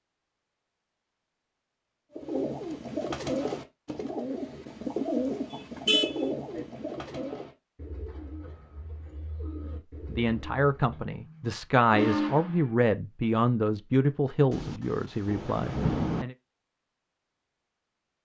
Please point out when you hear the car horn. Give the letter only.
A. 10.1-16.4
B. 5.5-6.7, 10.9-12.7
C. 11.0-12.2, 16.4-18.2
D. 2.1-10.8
B.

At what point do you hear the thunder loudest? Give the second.
16 s.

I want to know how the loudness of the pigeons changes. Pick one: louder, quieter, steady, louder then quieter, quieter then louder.
quieter.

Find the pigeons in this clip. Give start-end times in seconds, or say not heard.
2.1-10.8.